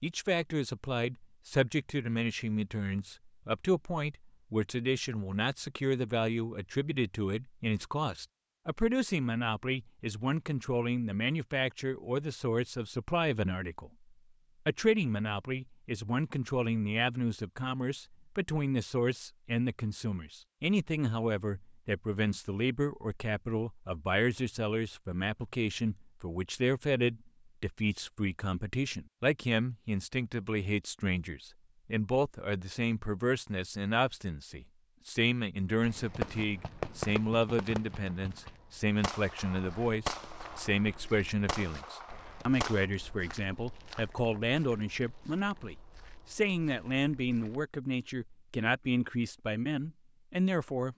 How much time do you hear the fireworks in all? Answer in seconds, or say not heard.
7 s.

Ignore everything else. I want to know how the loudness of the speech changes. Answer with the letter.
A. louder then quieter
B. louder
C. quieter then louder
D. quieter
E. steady
E.